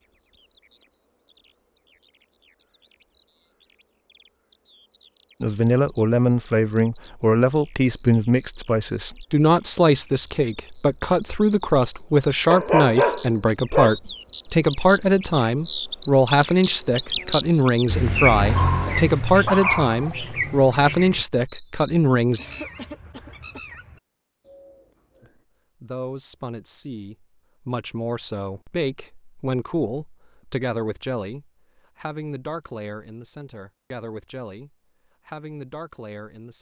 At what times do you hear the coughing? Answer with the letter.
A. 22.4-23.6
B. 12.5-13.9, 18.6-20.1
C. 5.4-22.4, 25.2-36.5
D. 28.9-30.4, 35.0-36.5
A.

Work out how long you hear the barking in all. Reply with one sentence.
You can hear the barking for 3 seconds altogether.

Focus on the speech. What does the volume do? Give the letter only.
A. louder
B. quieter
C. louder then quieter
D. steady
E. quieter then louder
B.